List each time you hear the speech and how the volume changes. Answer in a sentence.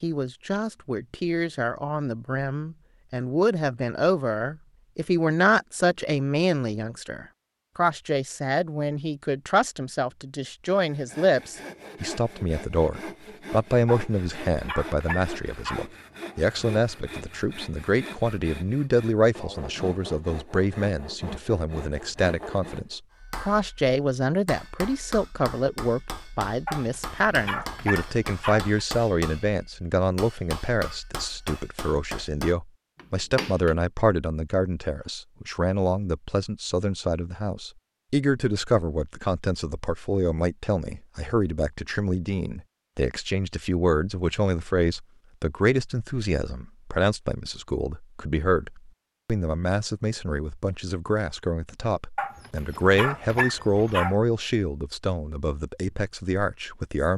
You can hear the speech from 0.0 to 57.1 s, at a steady volume.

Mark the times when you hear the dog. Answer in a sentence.
You can hear the dog from 13.8 to 15.8 s, from 26.6 to 28.8 s and from 52.1 to 54.1 s.